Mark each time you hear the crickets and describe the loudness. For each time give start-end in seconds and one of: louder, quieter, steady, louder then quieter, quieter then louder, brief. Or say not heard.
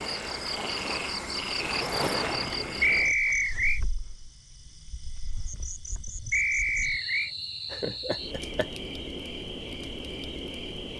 0.0-10.9 quieter then louder.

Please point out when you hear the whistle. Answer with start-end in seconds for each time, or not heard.
2.8-3.8, 6.3-7.3.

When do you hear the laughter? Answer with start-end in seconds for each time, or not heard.
7.7-8.8.